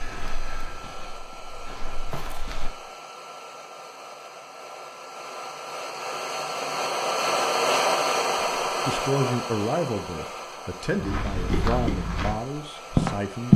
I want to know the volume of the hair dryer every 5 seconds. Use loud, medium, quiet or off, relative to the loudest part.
quiet, loud, quiet.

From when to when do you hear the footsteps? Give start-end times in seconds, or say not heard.
0.0-2.7, 10.9-13.5.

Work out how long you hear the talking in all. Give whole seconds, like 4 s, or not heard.
5 s.